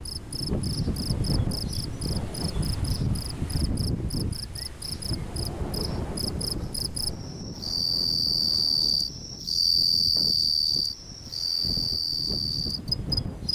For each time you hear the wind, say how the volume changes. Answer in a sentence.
You can hear the wind from 0.0 to 13.4 s, getting quieter.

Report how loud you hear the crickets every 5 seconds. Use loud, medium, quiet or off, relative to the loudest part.
quiet, loud, loud.